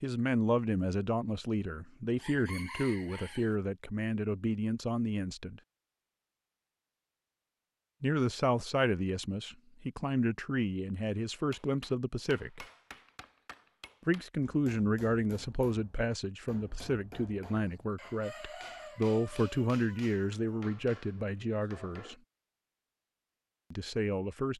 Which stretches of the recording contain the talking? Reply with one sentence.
You can hear the talking from 0.0 to 5.6 s, from 8.0 to 12.7 s, from 14.1 to 22.1 s and from 23.7 to 24.5 s.